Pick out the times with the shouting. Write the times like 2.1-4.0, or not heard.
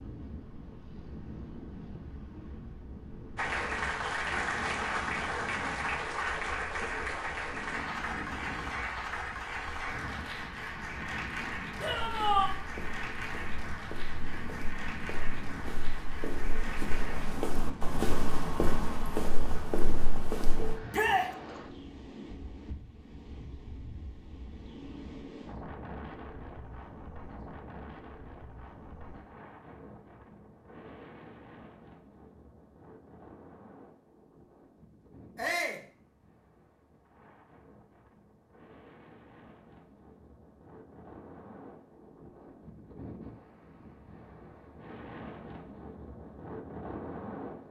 11.8-12.5, 20.9-21.3, 35.4-35.9.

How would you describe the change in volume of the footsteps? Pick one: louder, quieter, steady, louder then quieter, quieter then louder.
louder.